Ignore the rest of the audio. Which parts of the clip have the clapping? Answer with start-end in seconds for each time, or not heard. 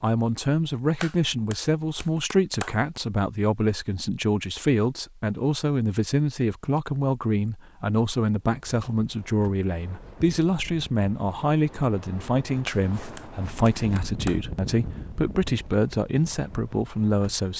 1.0-2.8, 12.7-14.4.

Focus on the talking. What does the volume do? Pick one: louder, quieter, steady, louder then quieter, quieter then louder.
steady.